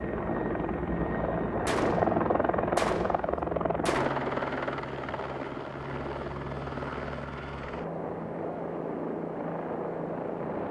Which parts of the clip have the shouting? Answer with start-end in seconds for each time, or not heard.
not heard.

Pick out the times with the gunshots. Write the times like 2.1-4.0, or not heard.
1.6-4.2.